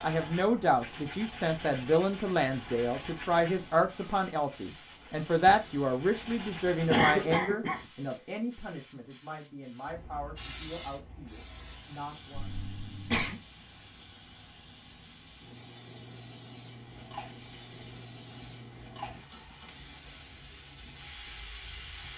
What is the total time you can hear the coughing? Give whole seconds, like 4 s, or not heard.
2 s.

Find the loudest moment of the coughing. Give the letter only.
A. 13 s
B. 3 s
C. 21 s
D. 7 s
D.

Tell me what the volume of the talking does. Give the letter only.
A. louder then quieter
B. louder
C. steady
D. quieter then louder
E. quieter
E.